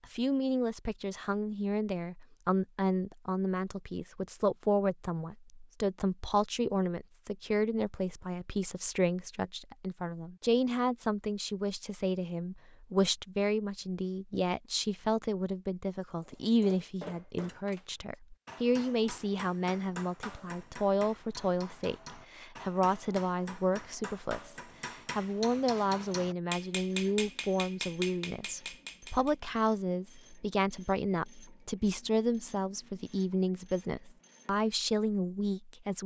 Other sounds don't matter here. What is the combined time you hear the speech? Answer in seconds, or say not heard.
36 s.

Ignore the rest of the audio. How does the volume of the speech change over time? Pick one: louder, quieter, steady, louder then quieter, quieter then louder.
steady.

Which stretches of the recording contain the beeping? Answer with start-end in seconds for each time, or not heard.
not heard.